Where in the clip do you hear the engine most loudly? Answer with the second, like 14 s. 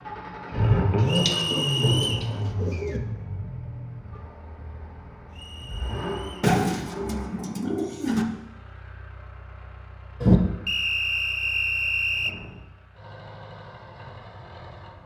1 s.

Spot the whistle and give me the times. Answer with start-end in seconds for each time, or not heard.
1.1-2.3, 5.3-6.5, 10.7-12.3.